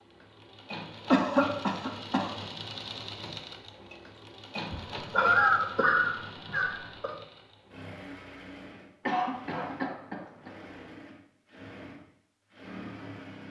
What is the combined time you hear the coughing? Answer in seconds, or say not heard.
5 s.